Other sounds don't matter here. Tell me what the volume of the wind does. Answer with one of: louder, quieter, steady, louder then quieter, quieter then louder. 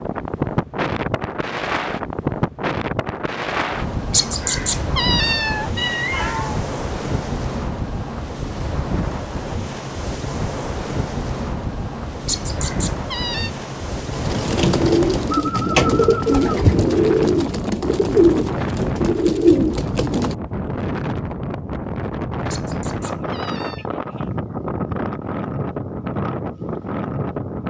steady.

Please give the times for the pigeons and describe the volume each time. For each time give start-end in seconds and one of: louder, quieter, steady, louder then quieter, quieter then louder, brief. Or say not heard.
14.2-20.4 steady.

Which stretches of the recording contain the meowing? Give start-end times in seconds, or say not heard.
4.1-6.5, 12.2-13.5, 22.5-23.9.